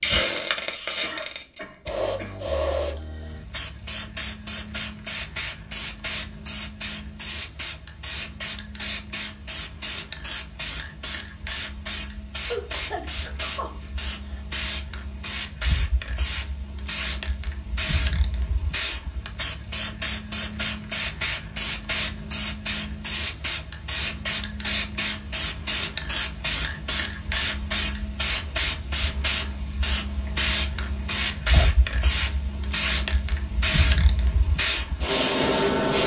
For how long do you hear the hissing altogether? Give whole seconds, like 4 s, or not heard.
36 s.